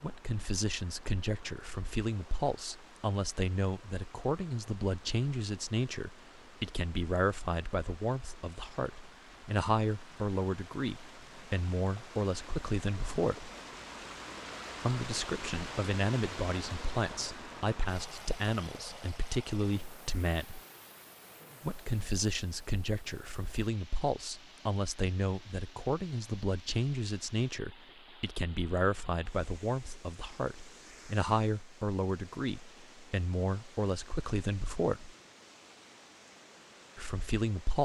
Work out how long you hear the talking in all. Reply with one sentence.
You can hear the talking for 34 seconds altogether.